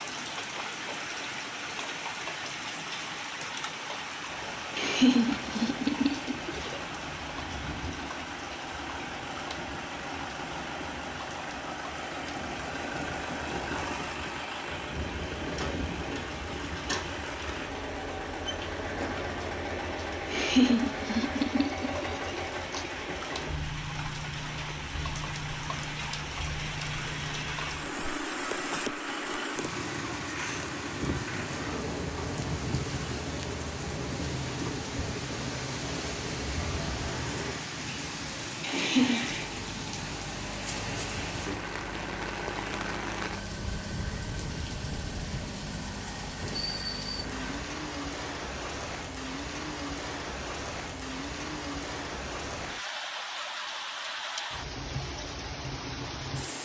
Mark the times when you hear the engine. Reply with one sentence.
You can hear the engine from 4.2 to 47.6 s.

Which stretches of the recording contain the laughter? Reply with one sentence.
The laughter can be heard from 4.8 to 6.8 s, from 20.3 to 22.9 s and from 38.6 to 39.2 s.